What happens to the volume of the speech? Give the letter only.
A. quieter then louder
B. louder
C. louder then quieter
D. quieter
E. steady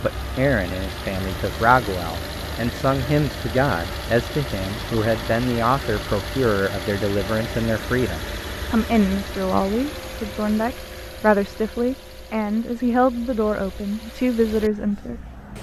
E.